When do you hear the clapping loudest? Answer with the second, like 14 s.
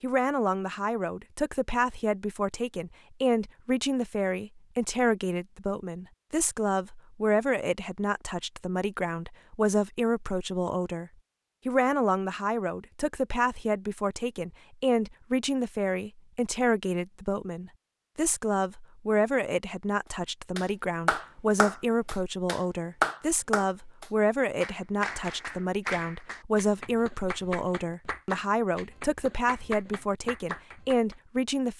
23 s.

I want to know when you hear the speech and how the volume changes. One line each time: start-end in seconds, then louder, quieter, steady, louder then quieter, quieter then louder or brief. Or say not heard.
0.0-31.7 steady.